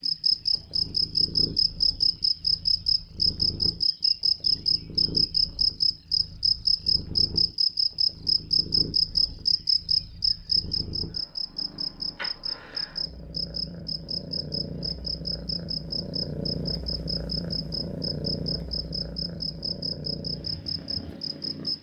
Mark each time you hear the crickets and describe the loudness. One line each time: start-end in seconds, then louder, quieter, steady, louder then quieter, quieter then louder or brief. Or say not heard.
0.0-21.7 quieter.